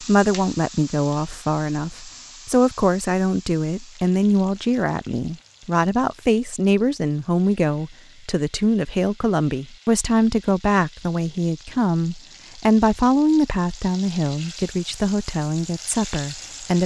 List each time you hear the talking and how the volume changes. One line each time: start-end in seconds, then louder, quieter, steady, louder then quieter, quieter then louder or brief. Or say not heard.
0.0-16.8 steady.